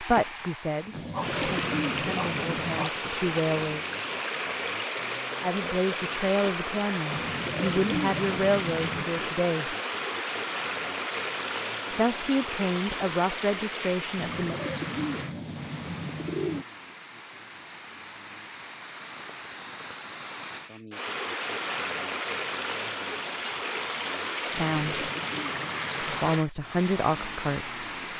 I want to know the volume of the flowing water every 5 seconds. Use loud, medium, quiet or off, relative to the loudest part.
loud, loud, loud, medium, loud, loud.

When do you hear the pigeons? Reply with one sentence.
The pigeons can be heard from 0.9 to 2.9 s, from 7.1 to 9.1 s, from 14.2 to 16.6 s and from 24.5 to 26.4 s.